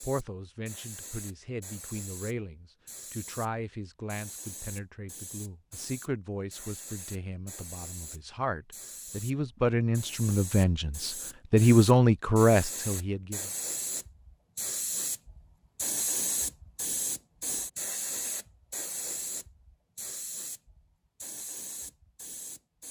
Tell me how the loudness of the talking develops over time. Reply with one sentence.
The loudness of the talking goes up.